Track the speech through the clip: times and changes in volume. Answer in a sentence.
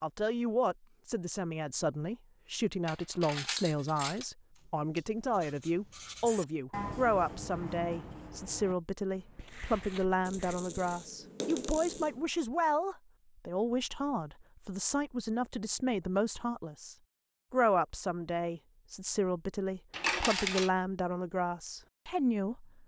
The speech can be heard from 0.0 to 22.8 s, at a steady volume.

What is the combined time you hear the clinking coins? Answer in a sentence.
You can hear the clinking coins for 4 seconds altogether.